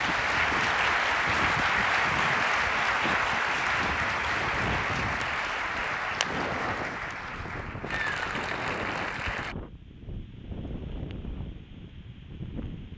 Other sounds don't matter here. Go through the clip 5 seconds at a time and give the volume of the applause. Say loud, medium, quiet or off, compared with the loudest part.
loud, medium, off.